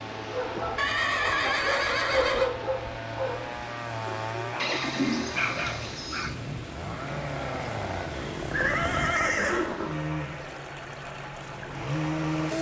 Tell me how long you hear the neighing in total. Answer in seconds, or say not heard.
5 s.